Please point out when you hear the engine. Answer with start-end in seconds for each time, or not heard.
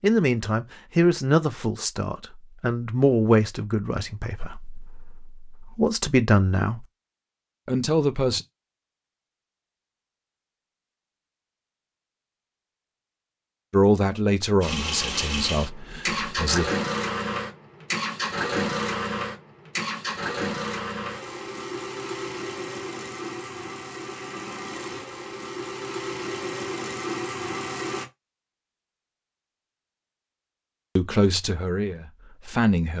14.6-28.1.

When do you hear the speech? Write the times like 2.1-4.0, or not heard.
0.0-6.8, 7.7-8.4, 13.7-16.7, 30.9-32.9.